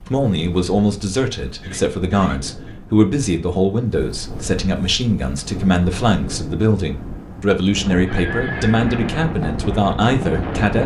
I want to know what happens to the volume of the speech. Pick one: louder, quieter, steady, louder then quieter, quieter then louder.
steady.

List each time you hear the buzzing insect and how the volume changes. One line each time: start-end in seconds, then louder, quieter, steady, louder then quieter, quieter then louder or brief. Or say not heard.
not heard.